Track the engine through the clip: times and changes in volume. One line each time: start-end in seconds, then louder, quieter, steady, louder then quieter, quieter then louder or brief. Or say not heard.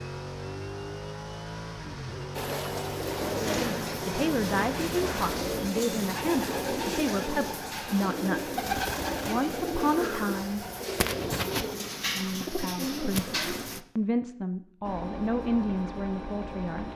0.0-5.7 steady
14.8-16.9 brief.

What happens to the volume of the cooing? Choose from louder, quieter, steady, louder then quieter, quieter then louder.
steady.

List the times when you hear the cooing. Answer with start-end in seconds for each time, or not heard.
2.4-13.8.